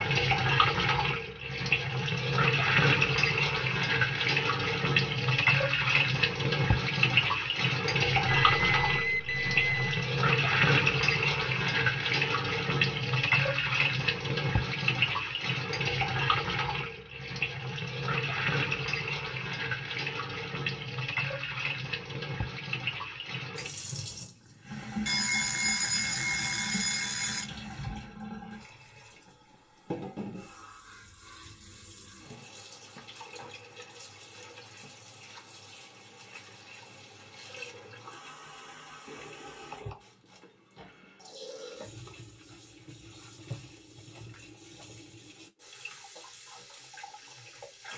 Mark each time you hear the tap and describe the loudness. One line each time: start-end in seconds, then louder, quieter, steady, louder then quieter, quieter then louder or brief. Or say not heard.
0.0-47.9 quieter.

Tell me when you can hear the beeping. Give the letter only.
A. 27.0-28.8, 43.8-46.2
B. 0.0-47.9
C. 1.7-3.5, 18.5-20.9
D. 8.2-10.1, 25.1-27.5
D.